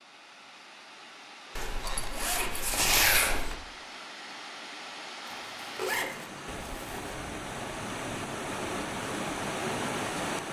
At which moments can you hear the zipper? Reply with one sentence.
The zipper can be heard from 1.6 to 3.5 s and from 5.2 to 7.1 s.